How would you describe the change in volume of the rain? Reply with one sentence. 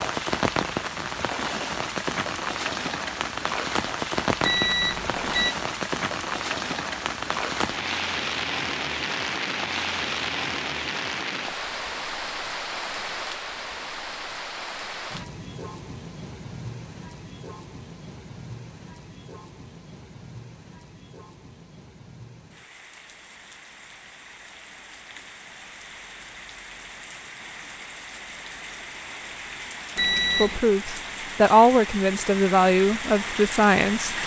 The loudness of the rain goes down, then up.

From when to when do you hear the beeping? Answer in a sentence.
You can hear the beeping from 4.4 to 5.5 s and from 29.9 to 30.6 s.